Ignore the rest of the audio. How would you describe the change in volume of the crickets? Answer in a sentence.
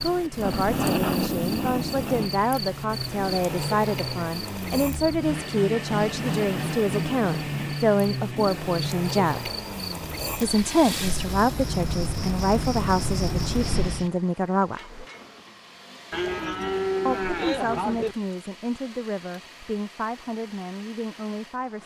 The volume of the crickets goes down, then up.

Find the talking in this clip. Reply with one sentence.
You can hear the talking from 0.0 to 9.5 s, from 10.3 to 15.0 s and from 17.1 to 21.8 s.